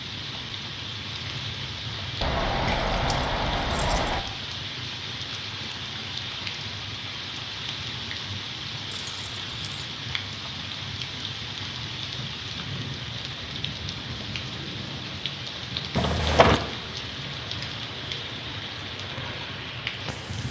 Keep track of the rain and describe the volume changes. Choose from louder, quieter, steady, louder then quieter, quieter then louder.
steady.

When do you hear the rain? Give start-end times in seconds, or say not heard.
0.0-20.4.